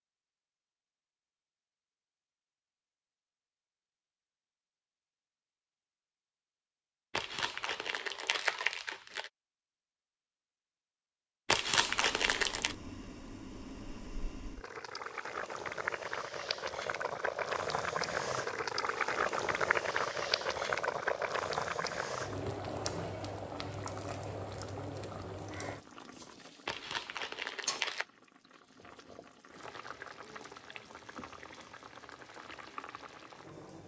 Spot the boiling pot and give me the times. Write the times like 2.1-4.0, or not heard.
11.7-33.8.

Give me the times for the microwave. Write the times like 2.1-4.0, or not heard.
not heard.